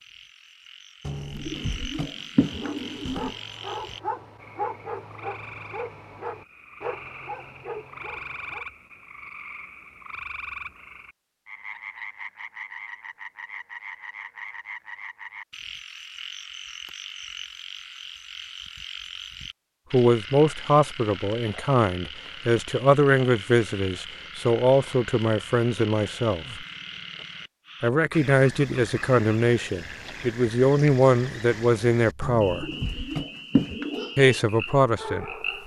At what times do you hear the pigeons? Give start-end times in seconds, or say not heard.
1.1-3.4, 32.2-34.1.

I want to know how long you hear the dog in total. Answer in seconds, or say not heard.
8 s.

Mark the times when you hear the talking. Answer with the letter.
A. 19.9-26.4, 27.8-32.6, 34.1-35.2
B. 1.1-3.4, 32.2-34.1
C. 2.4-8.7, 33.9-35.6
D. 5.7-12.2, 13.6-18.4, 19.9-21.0
A.